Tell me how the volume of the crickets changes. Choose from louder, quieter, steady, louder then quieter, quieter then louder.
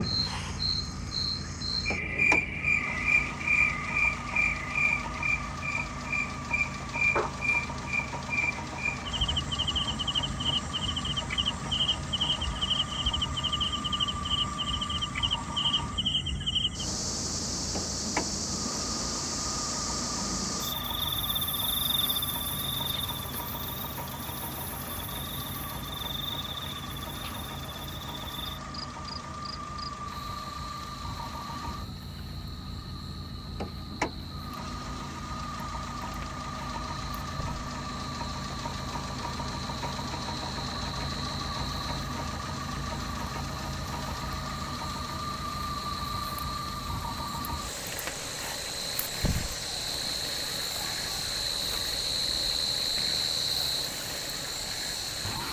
quieter then louder.